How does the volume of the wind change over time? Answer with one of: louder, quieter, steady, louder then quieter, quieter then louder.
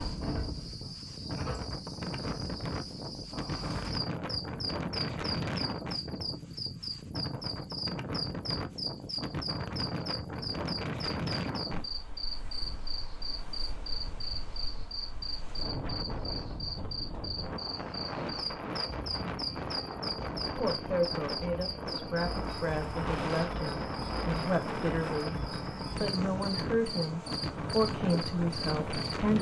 quieter then louder.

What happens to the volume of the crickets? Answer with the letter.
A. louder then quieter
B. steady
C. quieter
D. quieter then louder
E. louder
B.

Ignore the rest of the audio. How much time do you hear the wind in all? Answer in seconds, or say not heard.
29 s.